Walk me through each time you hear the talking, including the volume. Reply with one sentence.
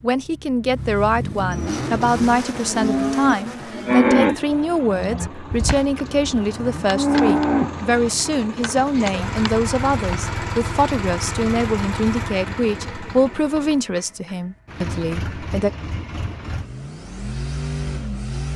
The talking can be heard from 0.0 to 15.7 s, at a steady volume.